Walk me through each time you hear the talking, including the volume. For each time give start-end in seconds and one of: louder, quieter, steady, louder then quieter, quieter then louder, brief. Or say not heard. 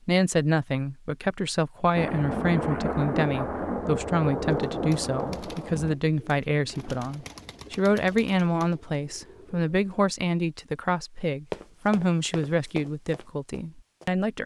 0.1-14.4 steady.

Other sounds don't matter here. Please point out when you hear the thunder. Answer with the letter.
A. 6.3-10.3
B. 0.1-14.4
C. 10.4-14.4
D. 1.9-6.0
D.